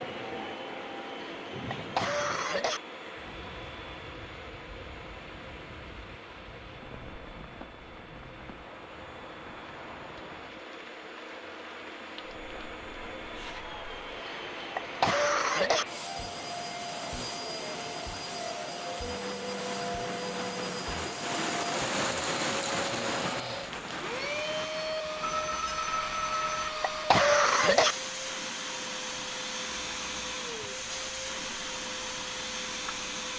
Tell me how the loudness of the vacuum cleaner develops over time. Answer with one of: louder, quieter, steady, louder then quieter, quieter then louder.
louder.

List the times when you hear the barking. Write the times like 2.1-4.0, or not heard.
not heard.